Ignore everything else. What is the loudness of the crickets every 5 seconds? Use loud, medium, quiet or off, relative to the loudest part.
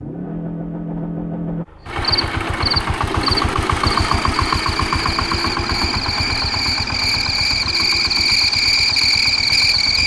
medium, loud.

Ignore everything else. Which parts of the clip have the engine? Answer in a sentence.
The engine can be heard from 0.0 to 10.0 s.